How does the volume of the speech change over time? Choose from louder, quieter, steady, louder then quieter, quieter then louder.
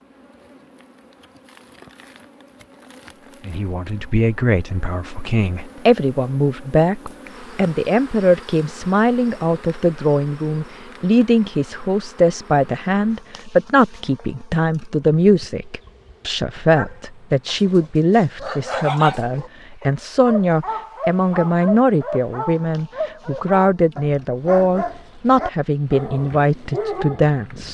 steady.